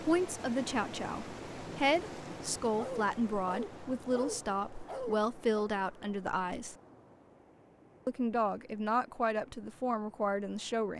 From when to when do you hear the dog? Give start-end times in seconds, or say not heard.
2.8-5.7.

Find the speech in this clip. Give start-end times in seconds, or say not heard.
0.0-6.8, 8.1-10.9.